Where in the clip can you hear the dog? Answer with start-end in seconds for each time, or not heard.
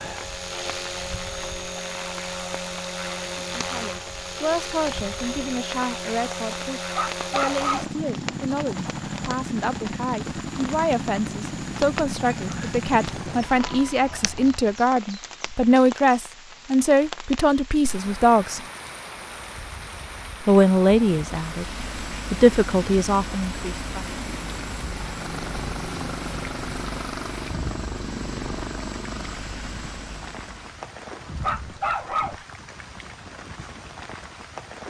7.0-7.9, 31.4-32.4.